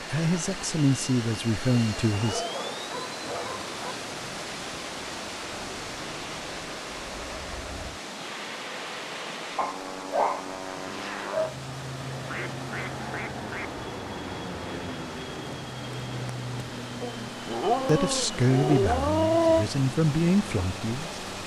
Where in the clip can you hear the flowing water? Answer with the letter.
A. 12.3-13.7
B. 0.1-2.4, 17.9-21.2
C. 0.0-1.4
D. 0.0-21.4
D.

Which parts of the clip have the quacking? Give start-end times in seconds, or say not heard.
12.3-13.7.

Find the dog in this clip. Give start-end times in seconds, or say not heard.
2.1-4.0, 9.6-11.6, 17.0-19.6.